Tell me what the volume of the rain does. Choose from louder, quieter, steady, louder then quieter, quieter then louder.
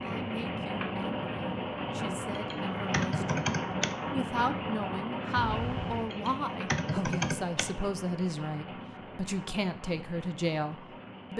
quieter.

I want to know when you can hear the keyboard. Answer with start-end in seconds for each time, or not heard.
2.4-4.0, 6.1-7.7.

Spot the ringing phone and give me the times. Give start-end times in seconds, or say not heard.
5.3-6.1.